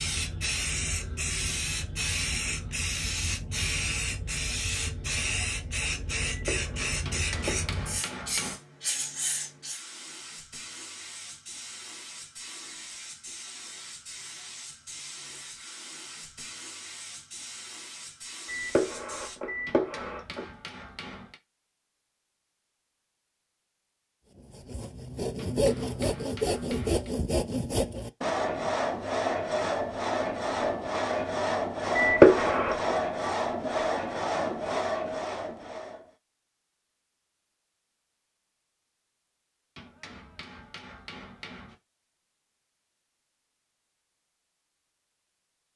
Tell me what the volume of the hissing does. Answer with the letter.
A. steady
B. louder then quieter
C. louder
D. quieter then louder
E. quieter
E.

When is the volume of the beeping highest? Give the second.
32 s.